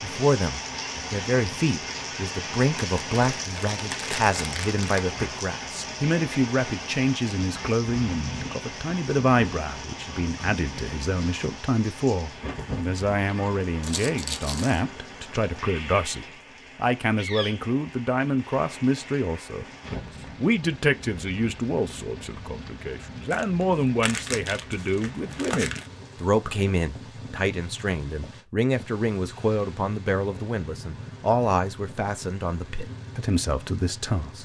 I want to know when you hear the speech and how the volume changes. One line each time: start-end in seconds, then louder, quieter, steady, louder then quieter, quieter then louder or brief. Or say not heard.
0.0-34.4 steady.